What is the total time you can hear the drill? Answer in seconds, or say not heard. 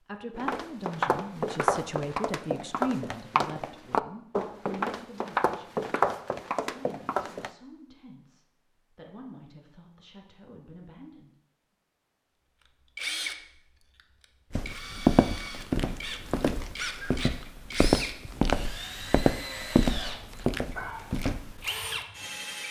10 s.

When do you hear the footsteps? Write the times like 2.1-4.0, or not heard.
0.3-7.5, 14.5-21.6.